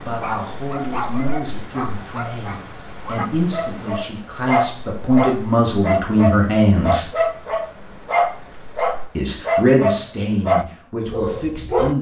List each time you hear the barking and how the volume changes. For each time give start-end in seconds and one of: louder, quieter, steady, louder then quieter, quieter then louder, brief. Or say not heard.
0.2-11.9 louder.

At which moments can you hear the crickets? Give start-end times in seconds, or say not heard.
0.0-9.1.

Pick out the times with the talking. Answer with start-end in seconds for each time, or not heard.
0.0-7.0, 9.2-11.9.